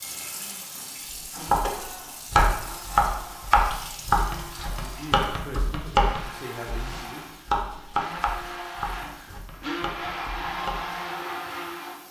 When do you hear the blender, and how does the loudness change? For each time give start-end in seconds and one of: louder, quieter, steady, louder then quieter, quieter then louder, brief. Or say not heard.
0.0-12.0 louder.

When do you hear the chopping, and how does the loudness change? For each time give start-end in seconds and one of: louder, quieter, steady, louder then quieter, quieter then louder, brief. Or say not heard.
1.1-10.8 quieter.